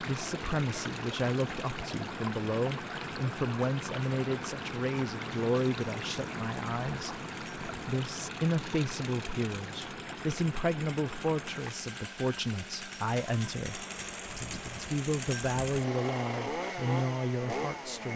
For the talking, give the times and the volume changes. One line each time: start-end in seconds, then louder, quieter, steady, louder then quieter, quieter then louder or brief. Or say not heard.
0.0-18.1 steady.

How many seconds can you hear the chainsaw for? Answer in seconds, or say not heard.
18 s.